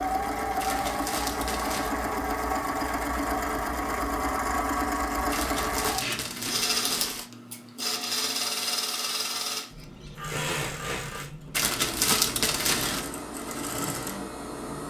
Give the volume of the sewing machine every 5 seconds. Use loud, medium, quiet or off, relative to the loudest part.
loud, loud, medium.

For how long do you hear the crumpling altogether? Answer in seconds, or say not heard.
5 s.